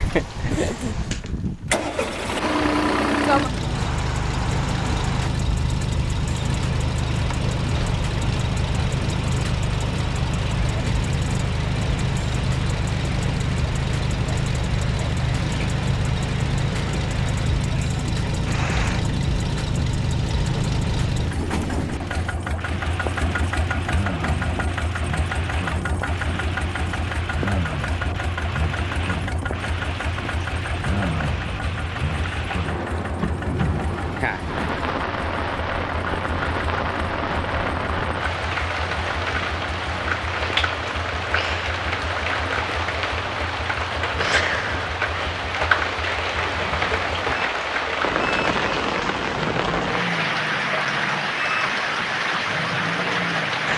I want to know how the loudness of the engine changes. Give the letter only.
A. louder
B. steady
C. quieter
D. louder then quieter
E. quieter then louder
C.